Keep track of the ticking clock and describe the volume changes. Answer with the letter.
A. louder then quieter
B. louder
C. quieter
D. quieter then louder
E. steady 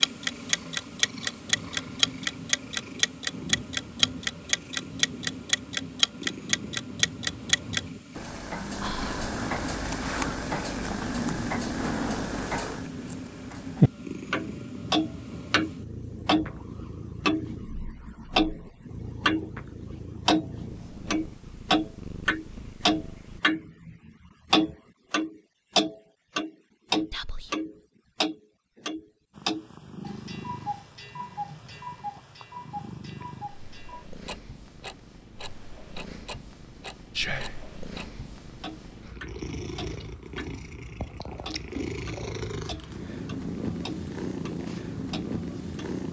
C.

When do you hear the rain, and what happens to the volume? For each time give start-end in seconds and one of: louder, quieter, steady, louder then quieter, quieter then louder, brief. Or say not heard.
not heard.